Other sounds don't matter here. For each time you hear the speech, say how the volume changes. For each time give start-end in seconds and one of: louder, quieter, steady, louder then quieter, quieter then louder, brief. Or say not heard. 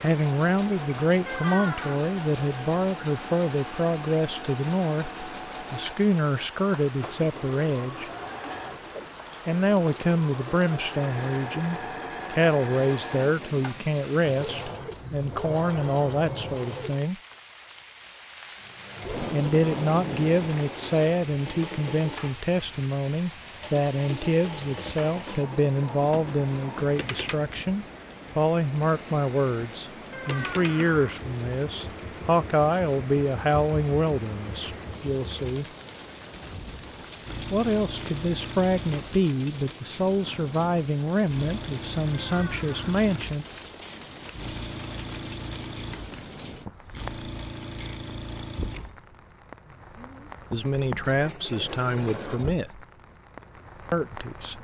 0.0-8.1 steady
9.4-17.1 steady
19.3-35.6 steady
37.5-43.5 steady
50.5-52.9 brief
53.9-54.5 brief.